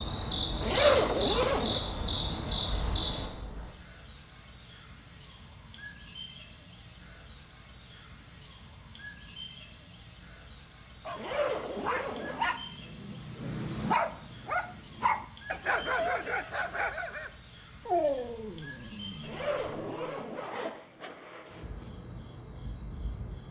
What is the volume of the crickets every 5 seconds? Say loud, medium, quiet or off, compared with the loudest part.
loud, loud, loud, loud, medium.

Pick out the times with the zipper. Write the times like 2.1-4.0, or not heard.
0.6-1.8, 11.2-12.4, 19.2-21.9.